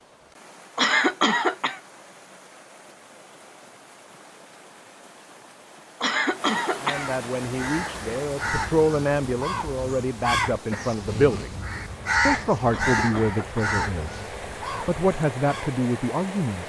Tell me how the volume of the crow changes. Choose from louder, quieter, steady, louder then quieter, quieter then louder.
louder then quieter.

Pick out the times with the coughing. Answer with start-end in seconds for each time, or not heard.
0.8-1.8, 6.0-7.2, 12.7-13.7.